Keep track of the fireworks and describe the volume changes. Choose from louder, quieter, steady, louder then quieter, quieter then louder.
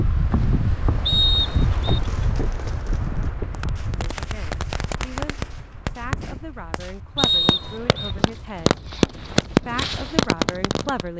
louder.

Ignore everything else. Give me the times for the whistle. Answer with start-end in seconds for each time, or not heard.
1.1-2.0, 7.2-8.2.